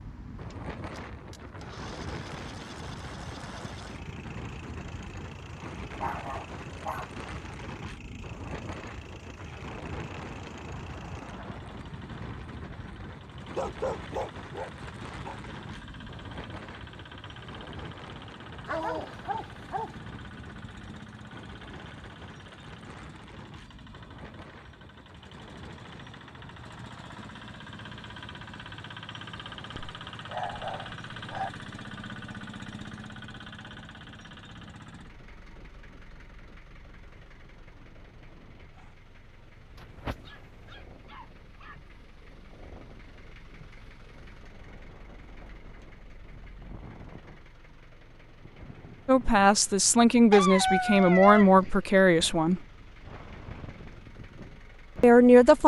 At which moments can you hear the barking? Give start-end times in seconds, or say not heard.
6.0-7.1, 13.3-15.3, 18.6-19.9, 29.8-31.5, 39.8-41.8, 50.3-51.9.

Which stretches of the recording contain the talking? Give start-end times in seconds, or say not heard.
49.0-52.6, 55.0-55.6.